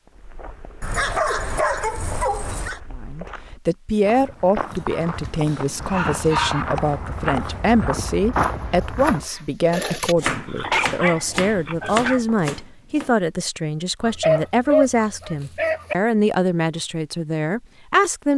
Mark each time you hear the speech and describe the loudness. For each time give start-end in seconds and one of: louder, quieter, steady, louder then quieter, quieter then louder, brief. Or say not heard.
3.0-18.3 steady.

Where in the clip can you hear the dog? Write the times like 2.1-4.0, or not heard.
0.8-2.8, 4.7-6.7, 9.7-12.2, 14.1-15.9.